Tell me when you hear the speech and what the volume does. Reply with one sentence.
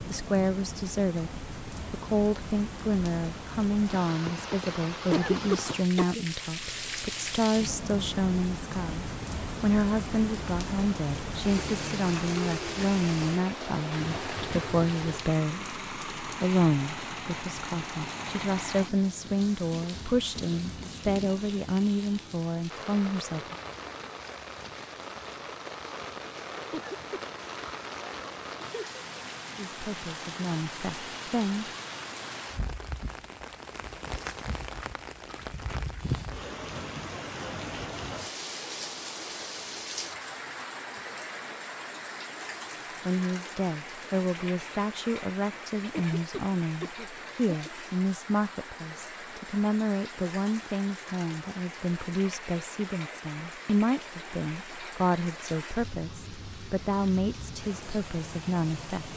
You can hear the speech from 0.1 to 23.6 s, at a steady volume; briefly from 29.6 to 31.7 s; and from 43.0 to 59.1 s, at a steady volume.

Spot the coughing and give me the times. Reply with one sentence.
The coughing can be heard from 5.1 to 6.2 s, from 26.7 to 27.2 s and from 45.9 to 47.7 s.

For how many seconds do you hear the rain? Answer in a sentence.
You can hear the rain for 59 seconds altogether.